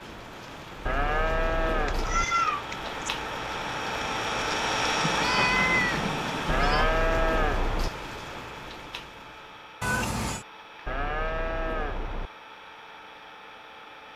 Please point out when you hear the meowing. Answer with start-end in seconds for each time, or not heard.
1.9-3.1, 5.0-6.9, 9.8-10.4.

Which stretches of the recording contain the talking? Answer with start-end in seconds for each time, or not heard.
not heard.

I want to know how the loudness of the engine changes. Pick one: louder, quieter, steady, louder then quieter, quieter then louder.
louder then quieter.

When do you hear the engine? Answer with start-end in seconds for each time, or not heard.
0.0-14.1.